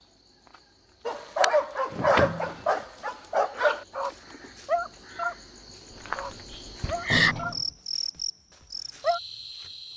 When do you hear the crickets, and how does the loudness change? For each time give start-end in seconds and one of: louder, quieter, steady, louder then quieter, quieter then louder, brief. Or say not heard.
0.0-9.9 louder then quieter.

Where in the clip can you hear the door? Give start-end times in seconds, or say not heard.
1.9-2.6, 5.9-7.7.